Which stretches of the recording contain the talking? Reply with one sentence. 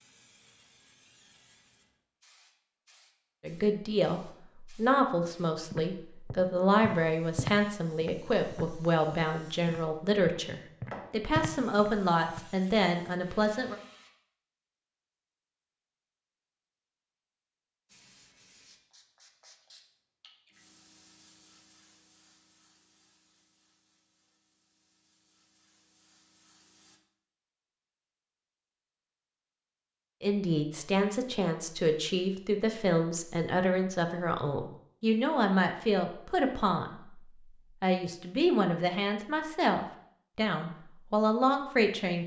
The talking can be heard from 3.4 to 13.8 s, from 30.2 to 37.2 s and from 37.8 to 42.2 s.